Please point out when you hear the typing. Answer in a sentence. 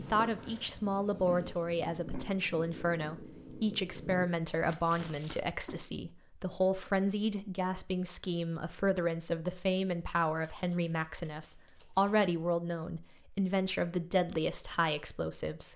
You can't hear the typing here.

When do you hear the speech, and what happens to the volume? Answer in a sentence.
The speech can be heard from 0.0 to 15.7 s, at a steady volume.